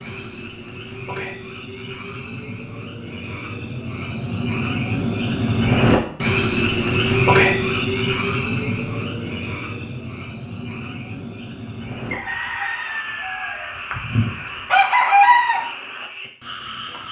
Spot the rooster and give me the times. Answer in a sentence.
You can hear the rooster from 12.1 to 15.6 s.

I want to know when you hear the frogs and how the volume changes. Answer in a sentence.
You can hear the frogs from 0.0 to 17.0 s, getting louder then quieter.